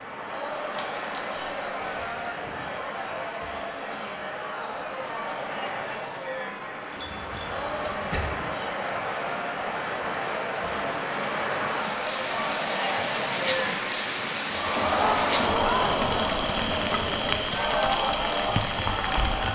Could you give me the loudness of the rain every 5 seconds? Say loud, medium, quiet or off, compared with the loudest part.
medium, medium, loud, loud.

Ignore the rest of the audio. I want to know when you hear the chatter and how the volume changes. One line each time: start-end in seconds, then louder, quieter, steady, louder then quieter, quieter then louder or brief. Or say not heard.
0.1-19.4 louder.